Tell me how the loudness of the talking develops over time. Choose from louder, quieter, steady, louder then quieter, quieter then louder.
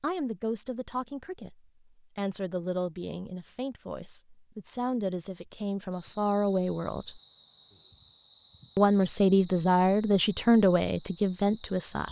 louder.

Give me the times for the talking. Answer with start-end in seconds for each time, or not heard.
0.0-7.1, 8.8-12.0.